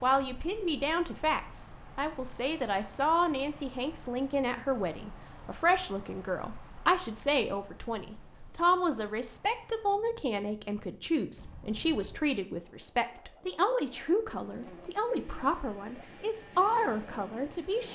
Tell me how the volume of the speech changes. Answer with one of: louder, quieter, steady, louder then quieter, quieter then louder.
steady.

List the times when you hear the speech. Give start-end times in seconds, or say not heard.
0.0-17.9.